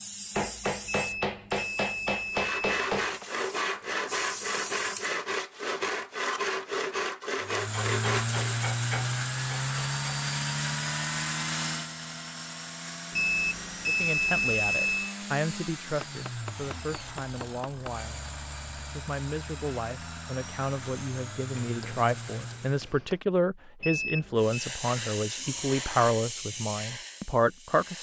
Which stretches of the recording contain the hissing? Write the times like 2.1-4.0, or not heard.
0.0-5.2, 24.4-27.9.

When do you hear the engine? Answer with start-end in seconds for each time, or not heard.
7.4-22.9.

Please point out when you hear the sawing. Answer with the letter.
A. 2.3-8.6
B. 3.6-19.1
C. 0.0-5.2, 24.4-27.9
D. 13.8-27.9
A.